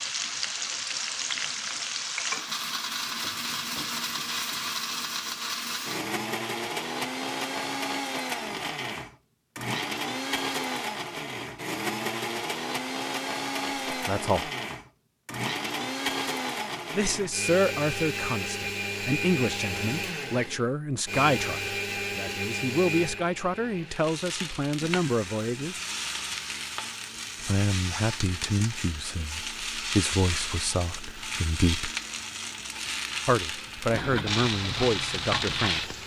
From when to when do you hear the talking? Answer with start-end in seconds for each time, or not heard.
13.9-14.5, 16.9-25.8, 27.4-31.9, 33.2-36.0.